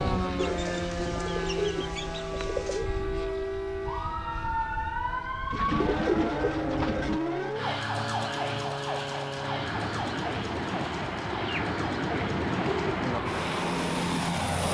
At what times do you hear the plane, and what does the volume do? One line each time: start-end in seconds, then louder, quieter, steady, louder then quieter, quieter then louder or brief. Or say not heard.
0.0-14.7 quieter then louder.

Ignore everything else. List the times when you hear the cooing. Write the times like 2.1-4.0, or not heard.
0.3-2.9, 5.5-7.2, 11.3-13.2.